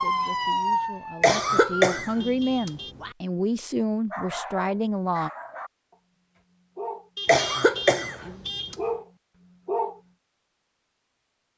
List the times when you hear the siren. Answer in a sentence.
You can hear the siren from 0.0 to 2.0 s.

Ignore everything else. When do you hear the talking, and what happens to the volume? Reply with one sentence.
You can hear the talking from 0.0 to 5.3 s, getting louder.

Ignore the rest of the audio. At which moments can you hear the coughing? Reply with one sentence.
You can hear the coughing from 1.2 to 3.1 s and from 7.2 to 8.8 s.